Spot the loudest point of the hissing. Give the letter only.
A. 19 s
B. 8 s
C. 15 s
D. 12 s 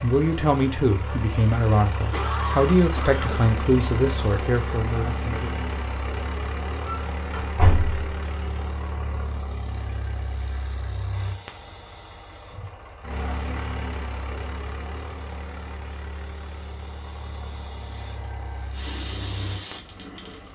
A.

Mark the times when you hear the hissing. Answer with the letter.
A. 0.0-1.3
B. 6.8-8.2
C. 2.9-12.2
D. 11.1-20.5
D.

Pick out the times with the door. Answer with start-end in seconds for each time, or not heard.
6.8-8.2.